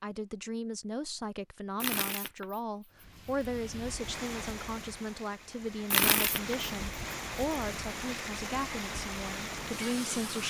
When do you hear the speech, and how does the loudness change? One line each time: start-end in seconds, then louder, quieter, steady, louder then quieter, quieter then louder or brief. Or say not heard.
0.0-10.4 steady.